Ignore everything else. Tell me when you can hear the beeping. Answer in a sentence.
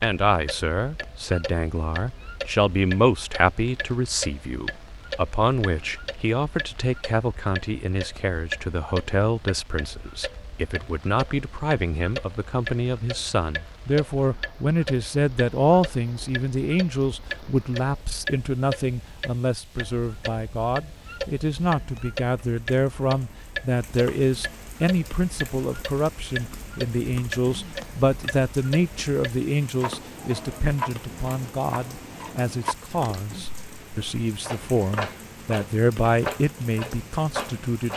The beeping can't be heard in this clip.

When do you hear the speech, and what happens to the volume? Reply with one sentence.
You can hear the speech from 0.0 to 37.9 s, at a steady volume.